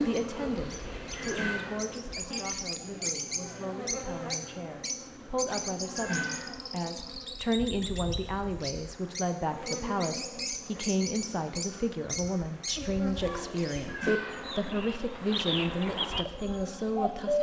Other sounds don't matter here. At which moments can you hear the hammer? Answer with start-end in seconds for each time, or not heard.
not heard.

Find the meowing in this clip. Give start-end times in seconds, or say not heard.
1.2-1.8, 6.0-6.5, 13.8-14.4.